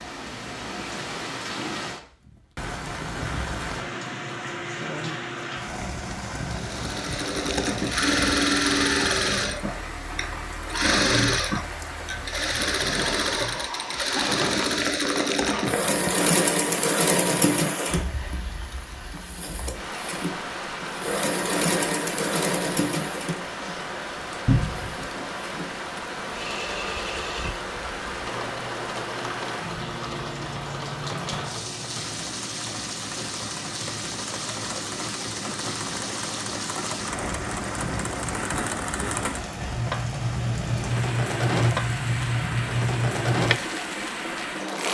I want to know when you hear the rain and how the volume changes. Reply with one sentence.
The rain can be heard from 0.0 to 44.9 s, at a steady volume.